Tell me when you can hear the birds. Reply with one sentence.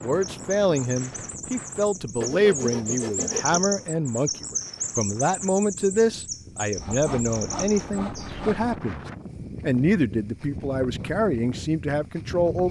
You can hear the birds from 0.0 to 8.4 s.